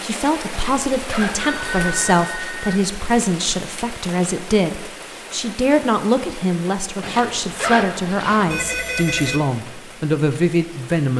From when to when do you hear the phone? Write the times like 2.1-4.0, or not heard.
1.4-2.8, 8.4-9.4.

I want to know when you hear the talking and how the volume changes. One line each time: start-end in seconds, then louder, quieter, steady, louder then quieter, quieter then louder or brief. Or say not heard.
0.0-11.1 steady.